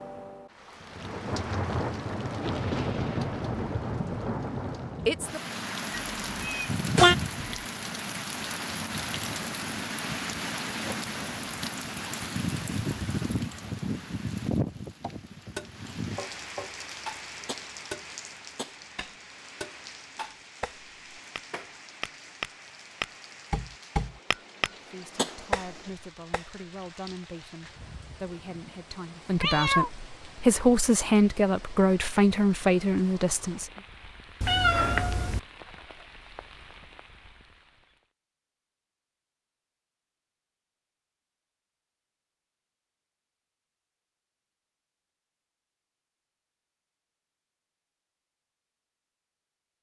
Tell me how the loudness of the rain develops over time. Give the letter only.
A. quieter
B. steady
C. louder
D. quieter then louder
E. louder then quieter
A.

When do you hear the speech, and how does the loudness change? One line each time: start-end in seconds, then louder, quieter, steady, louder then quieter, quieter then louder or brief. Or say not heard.
24.7-33.7 louder.